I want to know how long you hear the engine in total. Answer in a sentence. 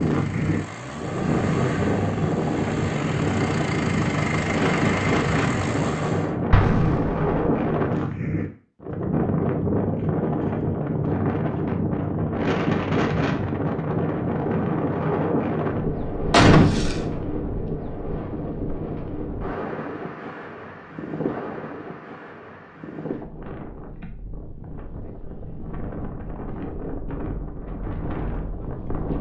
You can hear the engine for 6 seconds altogether.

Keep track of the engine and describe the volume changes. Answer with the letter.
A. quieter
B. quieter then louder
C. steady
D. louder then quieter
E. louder
E.